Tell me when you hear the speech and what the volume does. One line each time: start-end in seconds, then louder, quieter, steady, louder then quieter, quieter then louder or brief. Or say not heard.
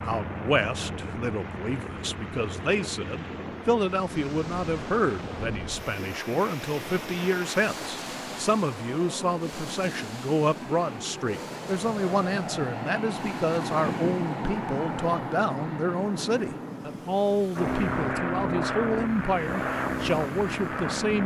0.0-21.2 steady.